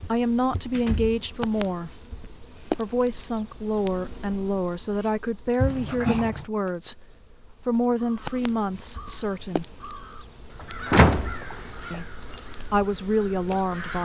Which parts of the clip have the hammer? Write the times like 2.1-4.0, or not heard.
not heard.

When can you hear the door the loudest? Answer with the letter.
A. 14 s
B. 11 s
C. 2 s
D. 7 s
B.